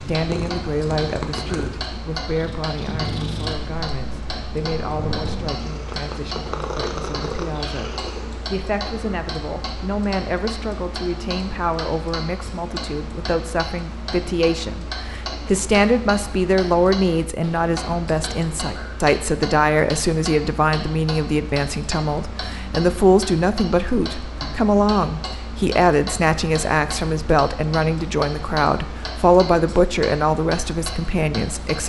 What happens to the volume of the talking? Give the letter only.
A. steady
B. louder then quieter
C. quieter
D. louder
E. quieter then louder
D.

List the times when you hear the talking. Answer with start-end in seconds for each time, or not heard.
0.0-31.8.